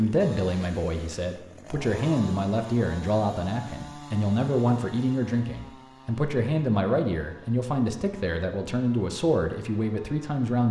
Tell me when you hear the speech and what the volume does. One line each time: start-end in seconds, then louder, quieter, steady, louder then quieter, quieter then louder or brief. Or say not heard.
0.0-10.6 steady.